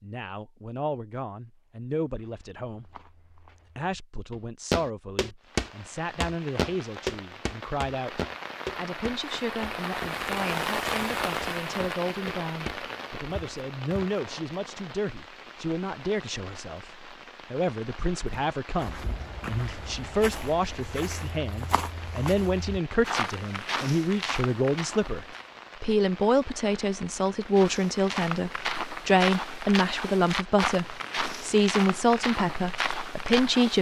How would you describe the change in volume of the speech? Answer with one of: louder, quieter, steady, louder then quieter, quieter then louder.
louder.